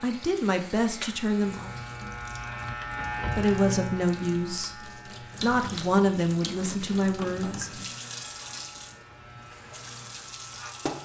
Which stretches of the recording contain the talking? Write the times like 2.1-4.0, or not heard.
0.0-1.7, 3.4-4.8, 5.4-7.8.